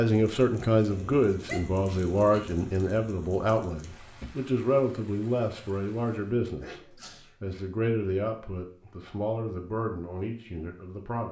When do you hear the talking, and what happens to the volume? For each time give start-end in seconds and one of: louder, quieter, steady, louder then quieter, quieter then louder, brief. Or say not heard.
0.0-11.2 quieter.